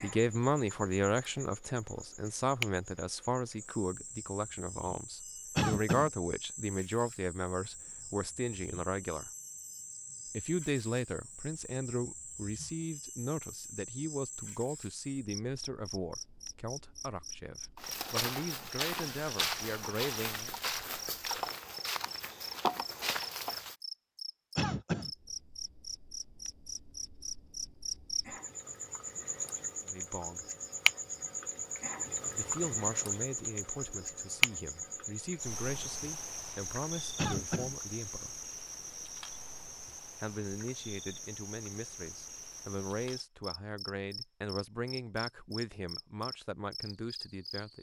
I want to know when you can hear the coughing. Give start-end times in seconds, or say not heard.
5.5-6.1, 24.6-25.1, 37.1-37.8.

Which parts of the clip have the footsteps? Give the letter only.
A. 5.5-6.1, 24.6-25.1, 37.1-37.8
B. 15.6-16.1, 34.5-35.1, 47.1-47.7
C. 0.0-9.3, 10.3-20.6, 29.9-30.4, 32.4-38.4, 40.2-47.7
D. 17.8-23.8
D.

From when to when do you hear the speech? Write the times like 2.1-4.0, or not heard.
0.0-9.3, 10.3-20.6, 29.9-30.4, 32.4-38.4, 40.2-47.7.